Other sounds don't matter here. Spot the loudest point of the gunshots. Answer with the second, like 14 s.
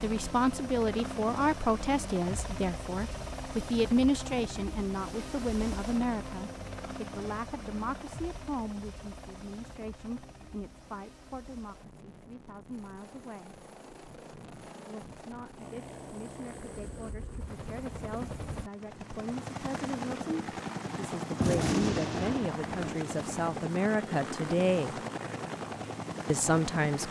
22 s.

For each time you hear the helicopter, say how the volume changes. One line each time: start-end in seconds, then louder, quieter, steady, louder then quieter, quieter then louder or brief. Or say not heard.
0.0-27.0 quieter then louder.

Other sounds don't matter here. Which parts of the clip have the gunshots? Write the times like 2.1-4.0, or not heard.
21.4-23.0.